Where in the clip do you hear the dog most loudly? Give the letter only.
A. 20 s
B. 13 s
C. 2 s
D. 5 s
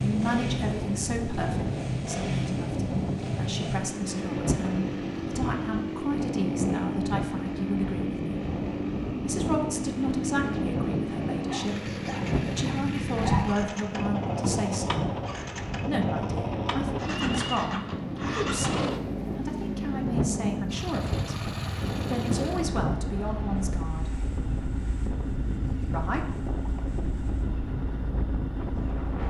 B.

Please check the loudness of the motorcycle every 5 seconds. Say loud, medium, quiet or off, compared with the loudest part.
loud, loud, loud, loud, loud, medium.